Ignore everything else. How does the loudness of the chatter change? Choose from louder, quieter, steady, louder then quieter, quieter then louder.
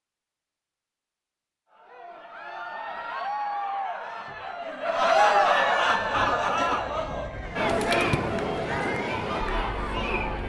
louder then quieter.